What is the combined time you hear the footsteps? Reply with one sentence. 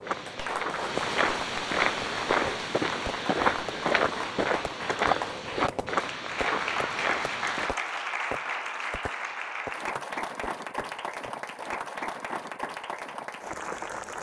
The footsteps can be heard for 8 seconds in total.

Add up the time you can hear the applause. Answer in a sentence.
You can hear the applause for 14 seconds altogether.